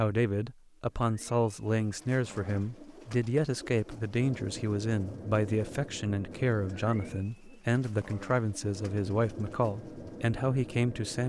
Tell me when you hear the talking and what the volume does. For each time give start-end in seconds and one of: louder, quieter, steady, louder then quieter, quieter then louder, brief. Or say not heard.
0.0-11.2 steady.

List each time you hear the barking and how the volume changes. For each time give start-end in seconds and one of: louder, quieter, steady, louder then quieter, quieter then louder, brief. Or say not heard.
not heard.